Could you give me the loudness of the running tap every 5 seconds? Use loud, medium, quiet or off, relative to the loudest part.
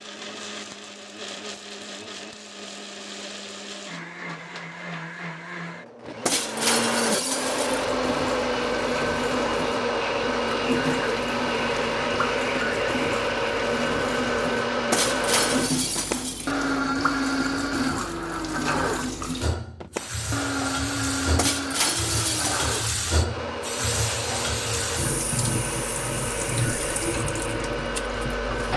off, medium, loud, loud, loud, loud.